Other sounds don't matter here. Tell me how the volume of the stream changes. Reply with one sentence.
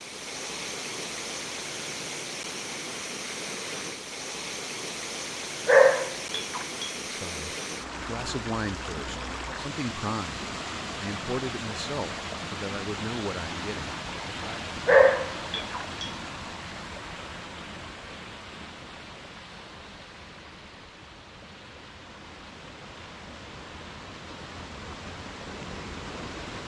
The loudness of the stream goes down.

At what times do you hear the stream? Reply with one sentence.
The stream can be heard from 0.0 to 26.6 s.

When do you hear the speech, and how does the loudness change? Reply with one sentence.
You can hear the speech from 7.0 to 14.6 s, at a steady volume.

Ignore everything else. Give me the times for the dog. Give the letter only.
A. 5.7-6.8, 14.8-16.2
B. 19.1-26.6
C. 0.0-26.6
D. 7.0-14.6
A.